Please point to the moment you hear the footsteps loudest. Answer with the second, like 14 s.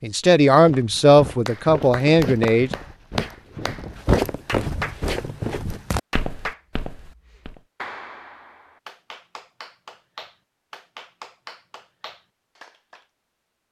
4 s.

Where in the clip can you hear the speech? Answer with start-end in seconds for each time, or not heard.
0.0-2.7.